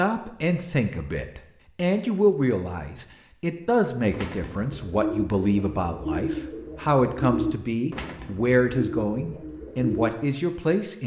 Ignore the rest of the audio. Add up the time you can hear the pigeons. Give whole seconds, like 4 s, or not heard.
6 s.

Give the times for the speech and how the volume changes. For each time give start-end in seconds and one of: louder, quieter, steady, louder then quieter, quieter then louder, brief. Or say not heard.
0.0-11.0 steady.